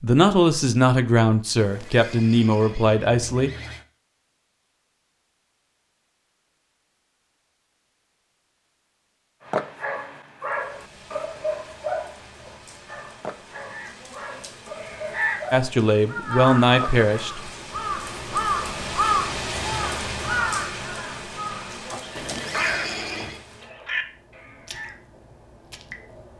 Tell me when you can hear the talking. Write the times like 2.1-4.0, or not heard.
0.0-3.5, 15.5-17.4.